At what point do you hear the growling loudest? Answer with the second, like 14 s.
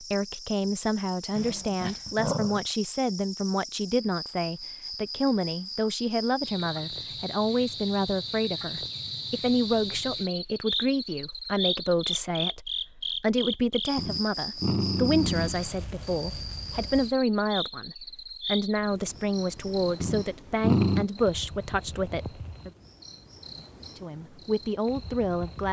21 s.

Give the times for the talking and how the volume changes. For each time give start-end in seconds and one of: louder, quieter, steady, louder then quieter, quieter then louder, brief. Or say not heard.
0.0-22.7 steady
23.9-25.6 brief.